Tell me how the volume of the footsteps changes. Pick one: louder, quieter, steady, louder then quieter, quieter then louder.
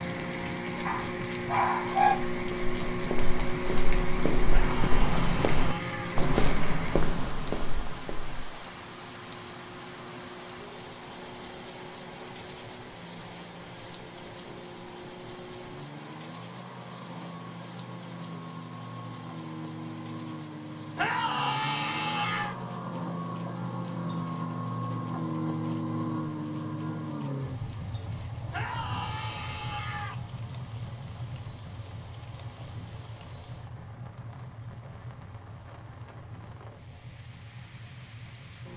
louder then quieter.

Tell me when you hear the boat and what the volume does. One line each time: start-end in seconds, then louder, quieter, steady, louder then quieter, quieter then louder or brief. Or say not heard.
0.0-6.3 steady
8.6-38.7 louder then quieter.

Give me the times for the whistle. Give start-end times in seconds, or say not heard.
not heard.